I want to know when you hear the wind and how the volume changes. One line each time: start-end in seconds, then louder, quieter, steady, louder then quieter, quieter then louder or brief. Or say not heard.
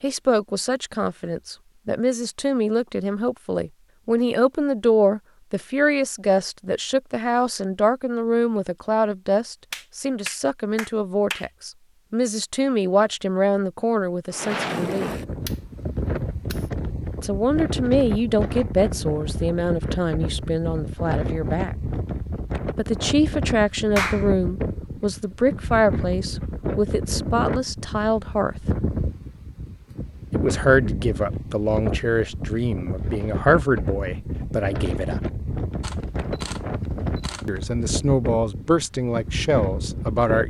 14.3-40.4 steady.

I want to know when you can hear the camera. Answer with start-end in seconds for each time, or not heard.
15.4-16.7, 35.8-37.8.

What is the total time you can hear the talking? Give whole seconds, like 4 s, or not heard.
33 s.